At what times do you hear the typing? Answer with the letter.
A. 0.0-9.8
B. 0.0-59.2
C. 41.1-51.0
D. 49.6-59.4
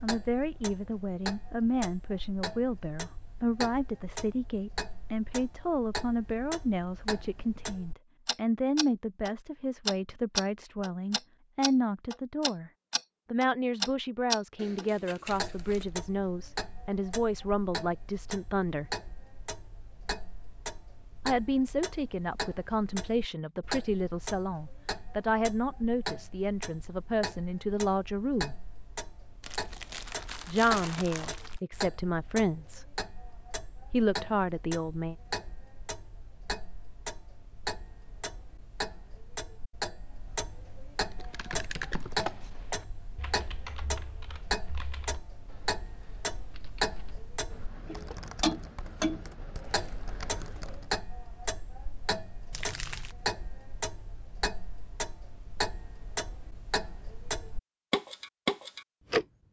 C.